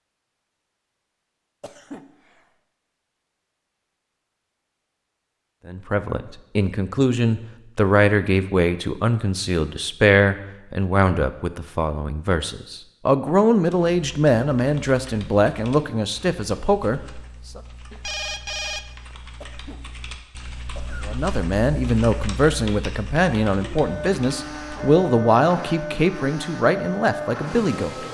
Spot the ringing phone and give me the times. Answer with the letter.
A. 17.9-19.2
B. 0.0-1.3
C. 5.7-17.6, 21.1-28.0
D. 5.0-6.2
A.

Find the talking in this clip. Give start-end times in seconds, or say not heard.
5.7-17.6, 21.1-28.0.